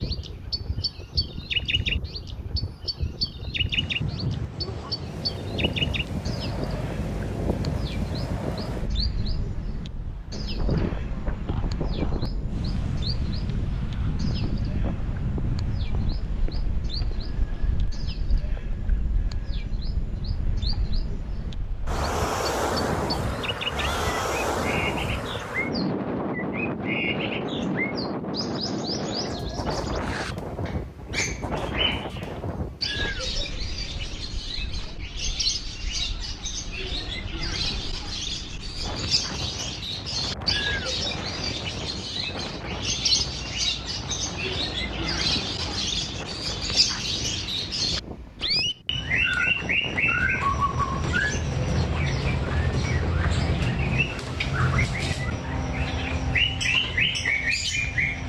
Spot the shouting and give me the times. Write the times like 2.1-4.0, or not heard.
23.8-24.3.